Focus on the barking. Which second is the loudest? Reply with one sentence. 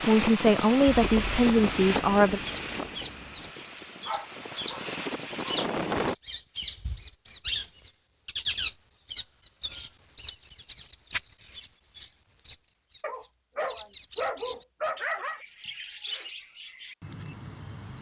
The volume of the barking peaks at 15 seconds.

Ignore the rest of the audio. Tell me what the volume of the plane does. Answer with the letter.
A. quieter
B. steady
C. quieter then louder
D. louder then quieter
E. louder
C.